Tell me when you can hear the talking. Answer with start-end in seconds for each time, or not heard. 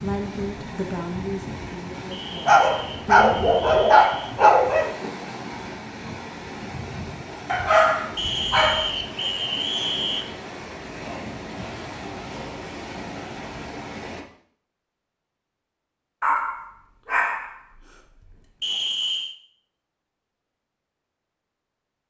0.0-3.4.